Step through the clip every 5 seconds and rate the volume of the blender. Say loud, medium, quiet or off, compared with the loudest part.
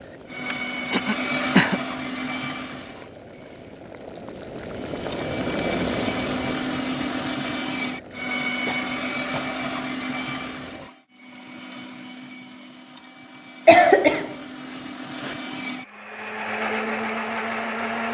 loud, loud, medium, loud.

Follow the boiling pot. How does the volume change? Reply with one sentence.
The loudness of the boiling pot goes up, then down.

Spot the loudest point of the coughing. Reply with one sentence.
The volume of the coughing peaks at 14 seconds.